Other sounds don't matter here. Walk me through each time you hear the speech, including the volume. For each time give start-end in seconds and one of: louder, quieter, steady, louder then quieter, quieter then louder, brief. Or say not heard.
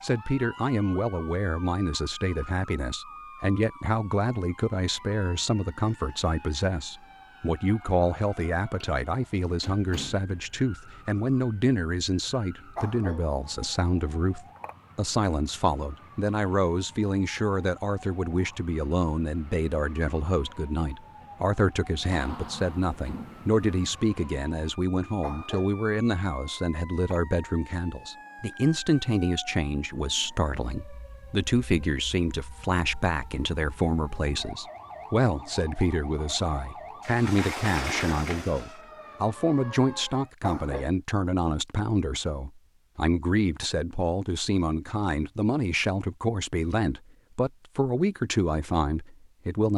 0.0-49.7 steady.